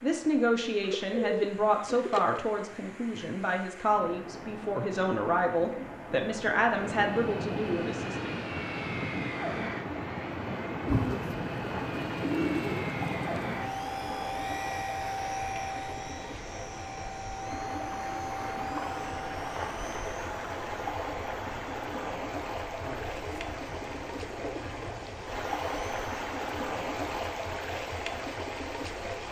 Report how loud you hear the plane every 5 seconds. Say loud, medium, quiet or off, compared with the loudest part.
off, loud, loud, loud, quiet, quiet.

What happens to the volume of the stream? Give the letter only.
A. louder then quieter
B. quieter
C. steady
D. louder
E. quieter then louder
D.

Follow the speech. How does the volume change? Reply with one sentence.
The loudness of the speech stays about the same.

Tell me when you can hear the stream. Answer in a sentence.
You can hear the stream from 0.0 to 29.2 s.